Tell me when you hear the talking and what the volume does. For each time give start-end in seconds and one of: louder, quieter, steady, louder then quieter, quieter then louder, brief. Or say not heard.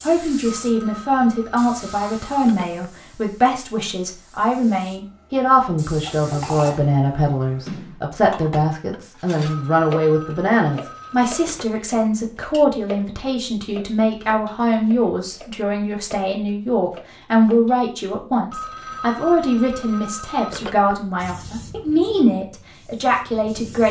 0.0-23.8 steady.